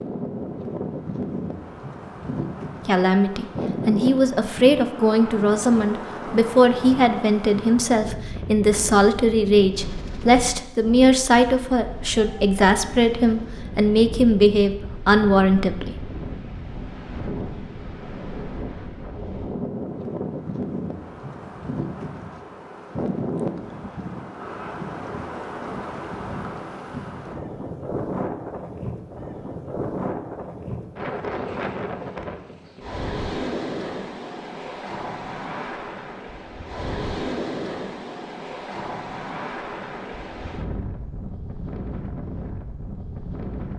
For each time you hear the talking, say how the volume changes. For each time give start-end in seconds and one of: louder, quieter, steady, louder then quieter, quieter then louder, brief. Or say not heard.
2.9-15.9 steady.